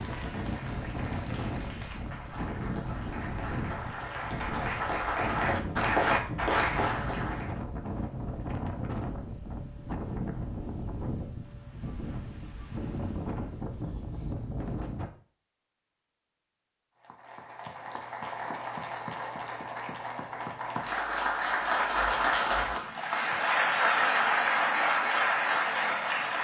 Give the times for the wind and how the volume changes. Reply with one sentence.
You can hear the wind from 0.0 to 15.1 s, at a steady volume.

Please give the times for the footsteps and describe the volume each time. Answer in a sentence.
You can't hear the footsteps here.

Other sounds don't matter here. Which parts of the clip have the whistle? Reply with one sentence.
The whistle can't be heard in this clip.